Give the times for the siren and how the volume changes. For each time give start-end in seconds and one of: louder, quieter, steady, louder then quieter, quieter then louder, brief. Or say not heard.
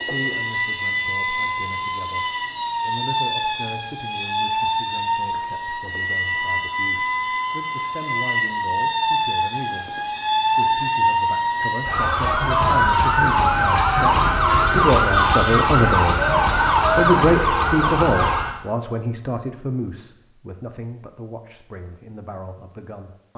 0.0-18.6 louder.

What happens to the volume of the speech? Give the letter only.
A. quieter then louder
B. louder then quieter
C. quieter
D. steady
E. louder
B.